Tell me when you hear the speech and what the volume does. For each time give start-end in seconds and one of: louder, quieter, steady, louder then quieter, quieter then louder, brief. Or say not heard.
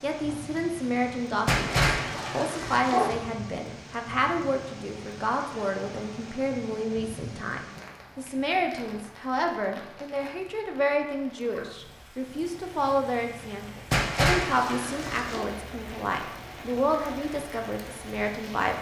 0.0-18.7 steady.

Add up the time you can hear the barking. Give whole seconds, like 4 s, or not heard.
3 s.